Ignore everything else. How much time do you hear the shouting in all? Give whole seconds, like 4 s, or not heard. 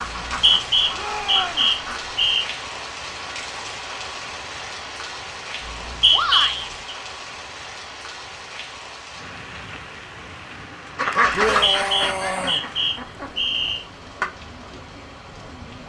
3 s.